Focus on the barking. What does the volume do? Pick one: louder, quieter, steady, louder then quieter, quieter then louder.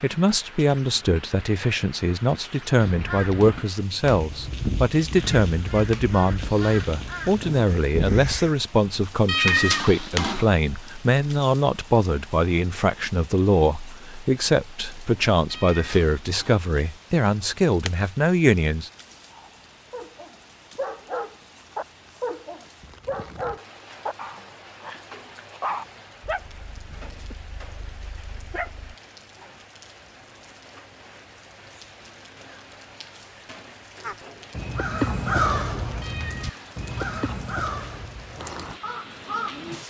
quieter.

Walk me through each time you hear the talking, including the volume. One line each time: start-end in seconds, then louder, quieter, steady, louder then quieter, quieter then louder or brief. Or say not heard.
0.0-18.9 steady.